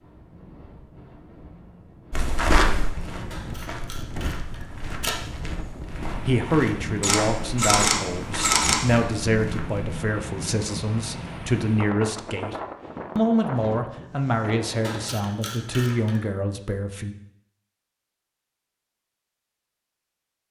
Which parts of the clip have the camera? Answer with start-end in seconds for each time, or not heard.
3.3-5.2, 7.0-8.8, 14.8-16.2.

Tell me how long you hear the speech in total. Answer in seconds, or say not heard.
10 s.